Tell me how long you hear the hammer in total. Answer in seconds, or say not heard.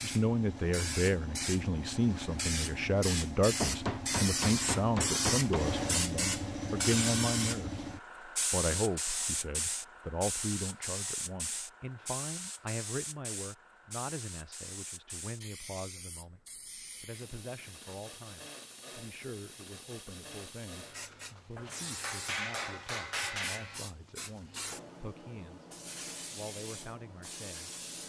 5 s.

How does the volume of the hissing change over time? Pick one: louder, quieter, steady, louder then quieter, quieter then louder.
quieter.